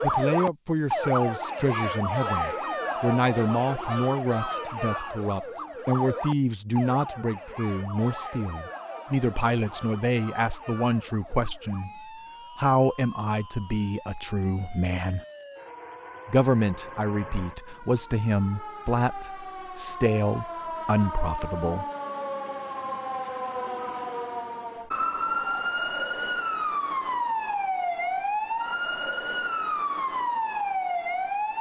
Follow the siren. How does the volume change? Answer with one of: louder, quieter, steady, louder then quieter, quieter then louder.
quieter then louder.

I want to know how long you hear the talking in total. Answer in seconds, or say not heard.
21 s.